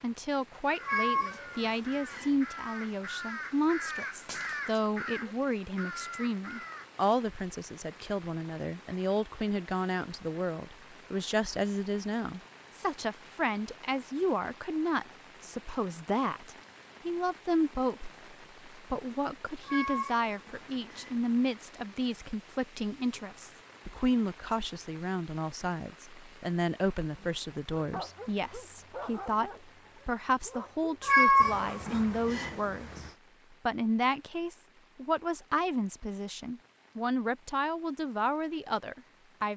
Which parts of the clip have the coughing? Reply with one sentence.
You can't hear the coughing here.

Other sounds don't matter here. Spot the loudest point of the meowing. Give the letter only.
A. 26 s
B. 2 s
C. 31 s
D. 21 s
C.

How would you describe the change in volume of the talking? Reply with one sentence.
The volume of the talking stays about the same.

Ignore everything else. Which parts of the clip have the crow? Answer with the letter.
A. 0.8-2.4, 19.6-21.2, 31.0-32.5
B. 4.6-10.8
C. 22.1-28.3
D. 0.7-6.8
D.